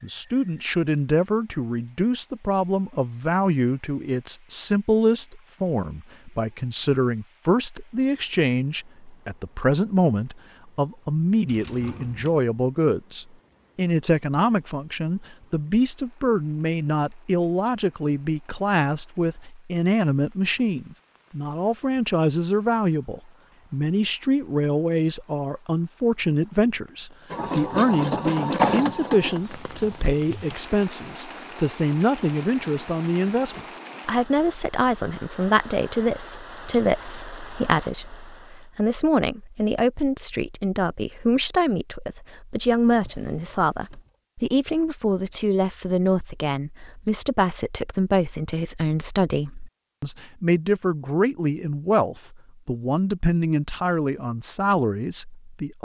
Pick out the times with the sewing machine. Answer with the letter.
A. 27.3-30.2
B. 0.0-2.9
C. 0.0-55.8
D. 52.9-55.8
A.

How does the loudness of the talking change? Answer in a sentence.
The loudness of the talking stays about the same.